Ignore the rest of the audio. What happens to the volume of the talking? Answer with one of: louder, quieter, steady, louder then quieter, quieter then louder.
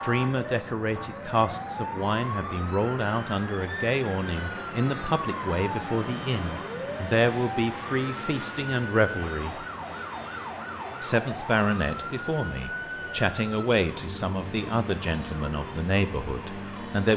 steady.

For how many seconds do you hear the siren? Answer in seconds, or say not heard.
17 s.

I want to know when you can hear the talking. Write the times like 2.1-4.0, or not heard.
0.0-9.7, 11.0-17.1.